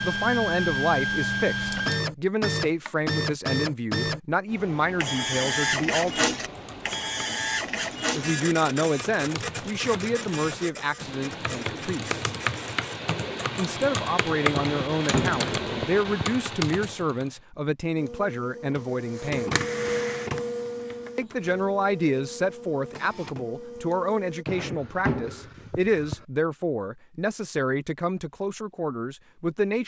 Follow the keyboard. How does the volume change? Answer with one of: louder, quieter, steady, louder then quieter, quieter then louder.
louder.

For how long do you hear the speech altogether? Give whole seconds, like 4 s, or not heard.
25 s.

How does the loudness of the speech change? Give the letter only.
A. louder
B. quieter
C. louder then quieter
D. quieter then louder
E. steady
E.